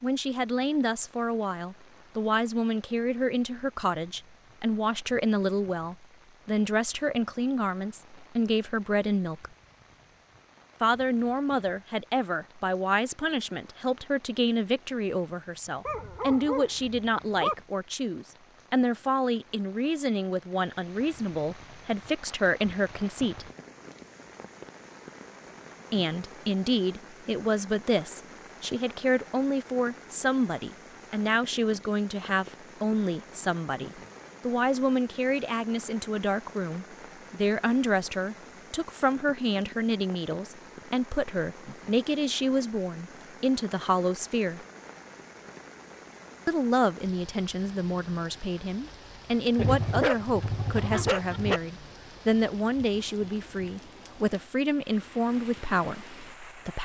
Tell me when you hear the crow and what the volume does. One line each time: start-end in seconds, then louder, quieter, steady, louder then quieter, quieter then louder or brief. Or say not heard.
not heard.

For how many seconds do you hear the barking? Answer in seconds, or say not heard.
4 s.